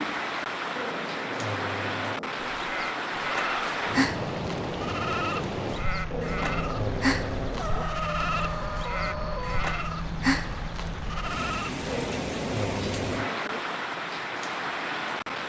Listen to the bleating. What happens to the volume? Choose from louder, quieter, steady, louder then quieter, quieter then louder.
steady.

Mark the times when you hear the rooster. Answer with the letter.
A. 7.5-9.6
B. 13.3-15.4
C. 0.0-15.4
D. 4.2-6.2
A.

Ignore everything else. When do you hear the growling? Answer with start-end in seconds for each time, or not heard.
0.8-2.5, 6.1-7.9, 11.8-13.7.